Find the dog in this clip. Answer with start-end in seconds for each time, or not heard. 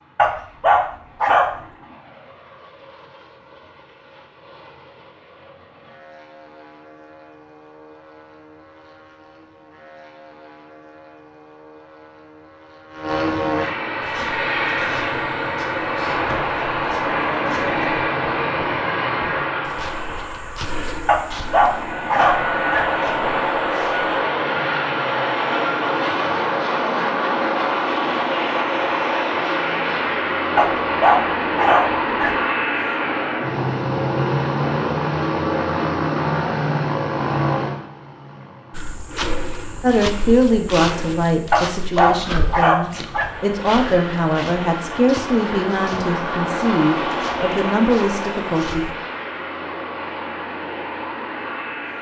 0.1-1.4, 21.1-22.9, 30.6-32.4, 41.5-43.3.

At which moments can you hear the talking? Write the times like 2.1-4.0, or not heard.
39.8-48.9.